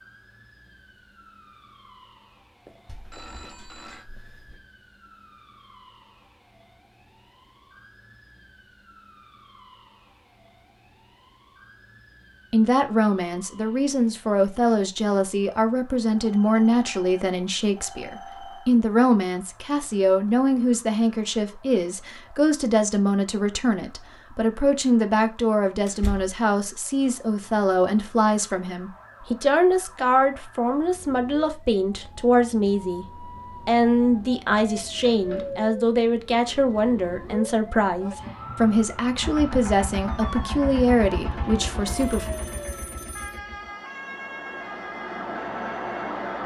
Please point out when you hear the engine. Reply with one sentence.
The engine can be heard from 39.2 to 46.4 s.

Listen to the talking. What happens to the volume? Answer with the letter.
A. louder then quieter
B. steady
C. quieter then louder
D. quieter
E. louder
B.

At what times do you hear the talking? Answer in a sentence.
The talking can be heard from 12.5 to 42.2 s.